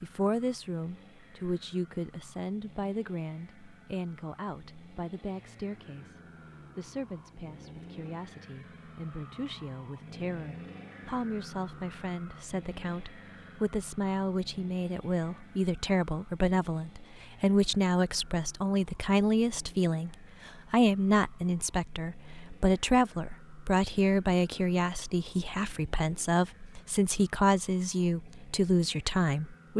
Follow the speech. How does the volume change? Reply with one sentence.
The loudness of the speech goes up.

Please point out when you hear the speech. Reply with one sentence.
The speech can be heard from 0.0 to 29.7 s.